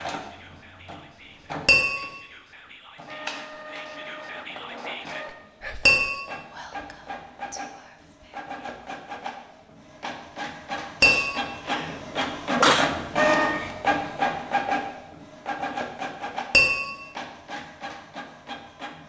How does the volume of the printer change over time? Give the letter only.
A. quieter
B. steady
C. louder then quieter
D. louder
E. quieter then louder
C.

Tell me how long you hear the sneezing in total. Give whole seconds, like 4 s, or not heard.
2 s.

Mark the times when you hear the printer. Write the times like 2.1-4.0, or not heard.
0.0-19.0.